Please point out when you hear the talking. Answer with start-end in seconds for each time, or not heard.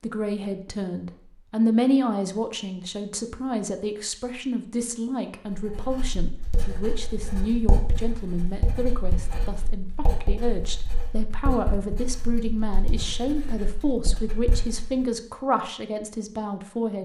0.0-17.0.